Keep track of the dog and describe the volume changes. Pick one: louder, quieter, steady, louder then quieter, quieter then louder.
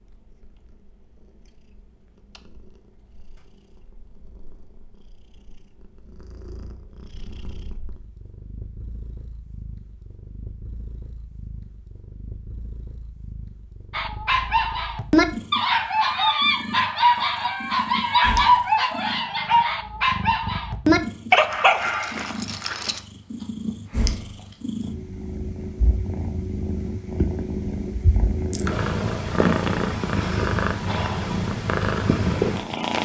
steady.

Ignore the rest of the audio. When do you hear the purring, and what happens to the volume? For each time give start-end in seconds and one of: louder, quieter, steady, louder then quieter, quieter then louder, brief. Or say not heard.
0.0-33.0 louder.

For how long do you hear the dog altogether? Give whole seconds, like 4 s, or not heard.
9 s.